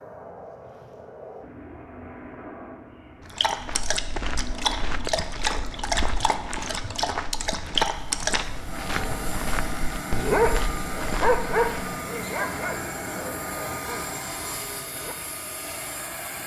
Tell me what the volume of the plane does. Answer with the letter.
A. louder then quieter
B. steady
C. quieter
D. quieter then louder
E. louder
E.